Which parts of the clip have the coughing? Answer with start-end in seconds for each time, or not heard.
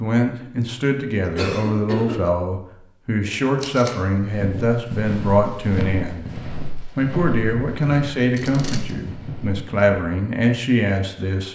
1.4-2.1.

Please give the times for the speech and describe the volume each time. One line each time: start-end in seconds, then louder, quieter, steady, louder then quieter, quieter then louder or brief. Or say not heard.
0.0-6.3 steady
7.0-11.5 quieter then louder.